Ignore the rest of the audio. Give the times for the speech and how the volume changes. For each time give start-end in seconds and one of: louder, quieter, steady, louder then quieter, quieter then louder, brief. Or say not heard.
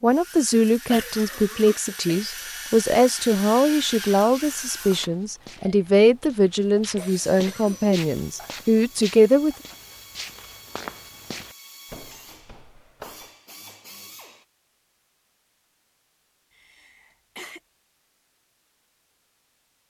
0.0-9.6 steady.